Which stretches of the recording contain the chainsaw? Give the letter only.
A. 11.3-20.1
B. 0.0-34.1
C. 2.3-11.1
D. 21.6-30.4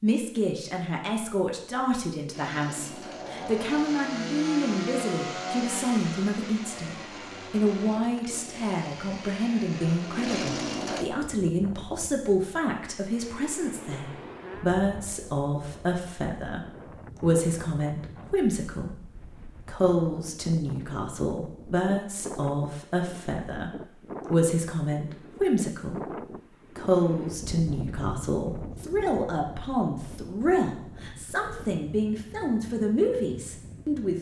C.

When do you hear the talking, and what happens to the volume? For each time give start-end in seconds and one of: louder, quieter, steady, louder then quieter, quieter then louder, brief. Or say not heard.
0.0-34.1 steady.